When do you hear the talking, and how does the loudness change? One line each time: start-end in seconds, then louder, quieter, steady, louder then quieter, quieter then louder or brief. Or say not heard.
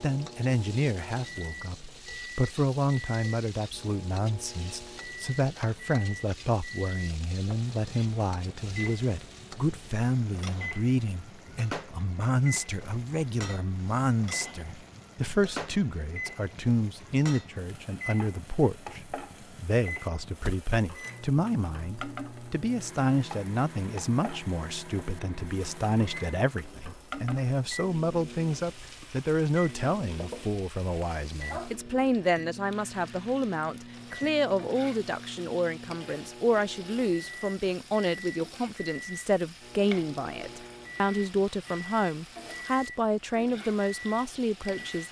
0.0-45.0 steady.